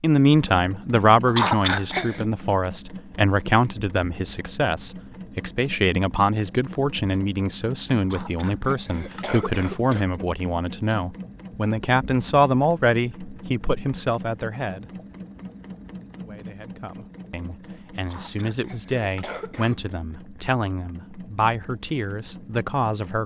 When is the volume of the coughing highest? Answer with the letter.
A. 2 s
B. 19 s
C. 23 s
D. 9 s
A.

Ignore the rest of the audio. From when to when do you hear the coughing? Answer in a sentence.
You can hear the coughing from 1.2 to 2.2 s, from 8.0 to 10.1 s and from 18.0 to 19.9 s.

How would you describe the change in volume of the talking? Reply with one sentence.
The volume of the talking goes down.